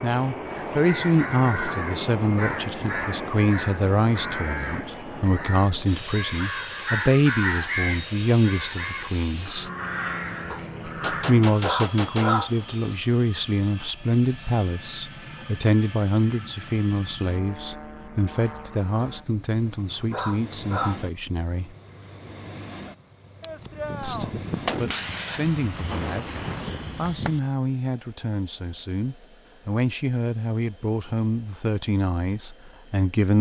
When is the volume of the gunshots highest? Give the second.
25 s.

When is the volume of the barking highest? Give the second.
12 s.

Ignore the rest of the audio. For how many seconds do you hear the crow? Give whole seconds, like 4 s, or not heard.
11 s.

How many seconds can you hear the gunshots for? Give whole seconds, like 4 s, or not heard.
6 s.